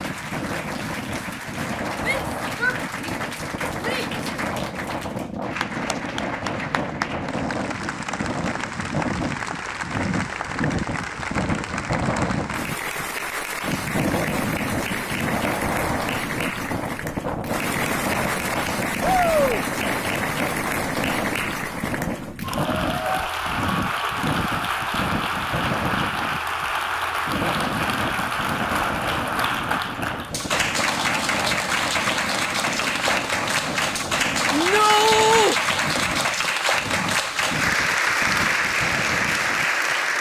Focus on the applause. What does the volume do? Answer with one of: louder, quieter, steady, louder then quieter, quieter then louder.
louder.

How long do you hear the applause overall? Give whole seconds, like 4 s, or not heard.
40 s.